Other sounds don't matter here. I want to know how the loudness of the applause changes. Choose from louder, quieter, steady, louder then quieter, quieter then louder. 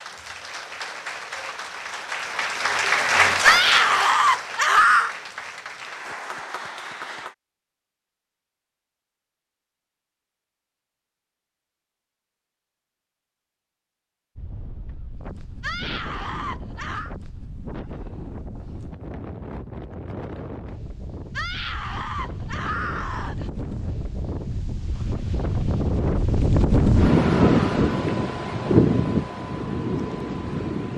louder then quieter.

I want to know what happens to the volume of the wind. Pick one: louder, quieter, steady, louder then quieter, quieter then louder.
louder.